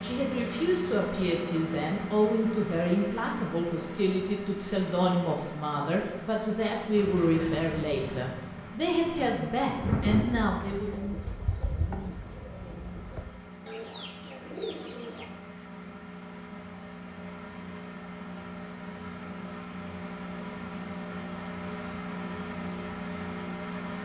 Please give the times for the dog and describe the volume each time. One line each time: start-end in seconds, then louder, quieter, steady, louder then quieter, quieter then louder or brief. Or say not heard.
not heard.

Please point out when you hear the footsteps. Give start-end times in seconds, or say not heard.
not heard.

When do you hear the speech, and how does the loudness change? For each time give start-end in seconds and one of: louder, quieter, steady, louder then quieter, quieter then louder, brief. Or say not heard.
0.0-10.9 steady.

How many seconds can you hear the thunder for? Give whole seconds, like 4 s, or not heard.
3 s.